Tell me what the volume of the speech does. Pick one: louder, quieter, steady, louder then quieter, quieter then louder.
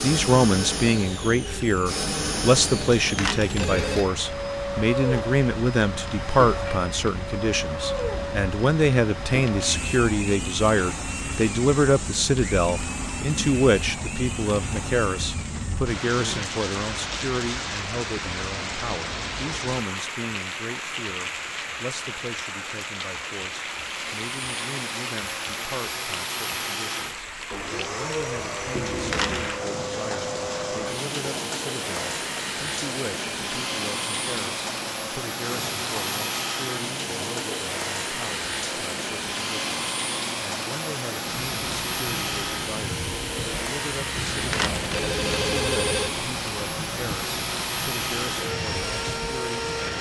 quieter.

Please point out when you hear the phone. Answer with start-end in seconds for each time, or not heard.
2.9-4.1, 28.7-29.6, 44.1-46.1.